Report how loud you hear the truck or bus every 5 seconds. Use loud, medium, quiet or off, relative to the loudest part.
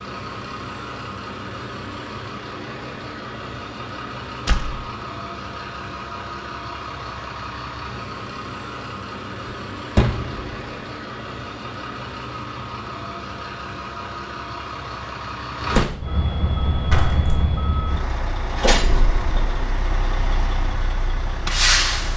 medium, medium, medium, loud, loud.